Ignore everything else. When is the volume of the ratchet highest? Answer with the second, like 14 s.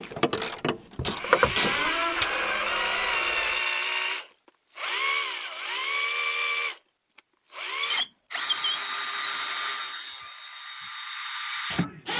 1 s.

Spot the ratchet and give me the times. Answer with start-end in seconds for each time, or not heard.
0.0-2.2.